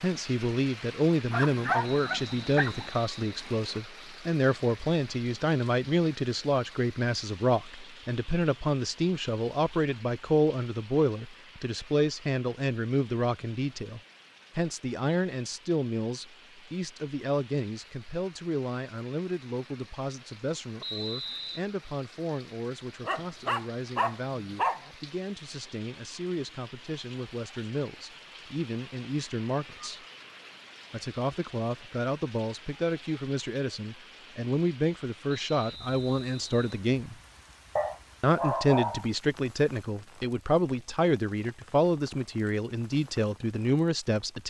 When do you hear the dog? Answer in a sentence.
You can hear the dog from 1.3 to 2.9 s, from 23.0 to 24.9 s and from 37.8 to 39.0 s.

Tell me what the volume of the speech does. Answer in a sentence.
The volume of the speech goes down, then up.